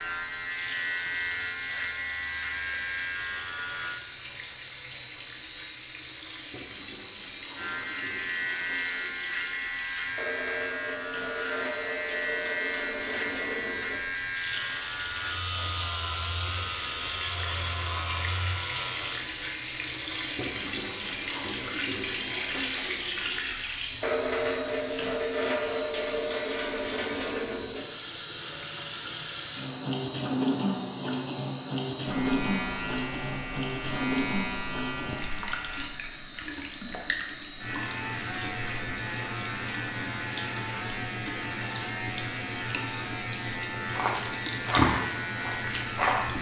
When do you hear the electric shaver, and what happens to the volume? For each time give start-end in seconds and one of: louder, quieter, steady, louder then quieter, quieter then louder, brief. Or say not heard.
0.0-46.3 steady.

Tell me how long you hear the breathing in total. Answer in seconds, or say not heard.
not heard.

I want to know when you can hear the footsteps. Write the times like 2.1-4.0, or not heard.
43.9-46.3.